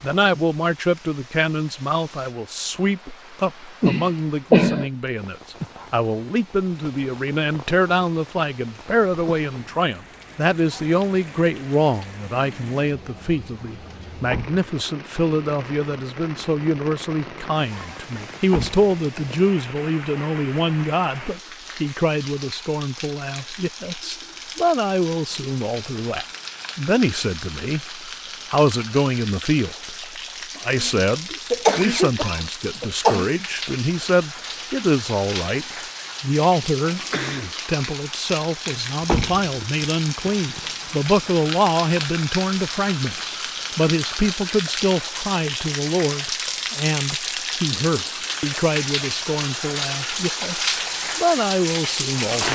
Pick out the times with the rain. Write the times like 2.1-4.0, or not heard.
0.0-52.4.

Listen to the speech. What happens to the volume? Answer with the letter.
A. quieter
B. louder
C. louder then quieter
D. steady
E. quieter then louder
D.